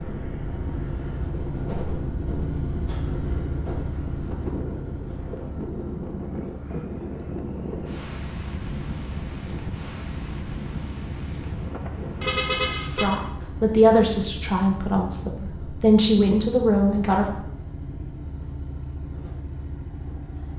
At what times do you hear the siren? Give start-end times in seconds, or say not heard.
not heard.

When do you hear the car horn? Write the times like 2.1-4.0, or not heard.
12.2-13.2.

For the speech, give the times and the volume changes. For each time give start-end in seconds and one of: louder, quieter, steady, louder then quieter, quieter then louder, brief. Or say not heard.
12.9-17.2 quieter then louder.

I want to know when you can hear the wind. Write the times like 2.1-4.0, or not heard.
0.0-12.8.